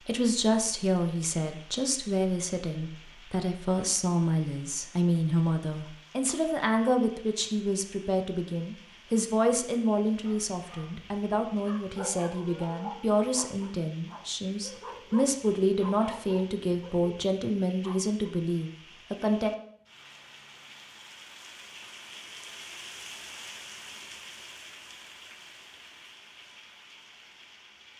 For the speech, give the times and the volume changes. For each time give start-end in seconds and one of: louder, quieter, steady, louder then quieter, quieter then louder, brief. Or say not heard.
0.1-19.5 steady.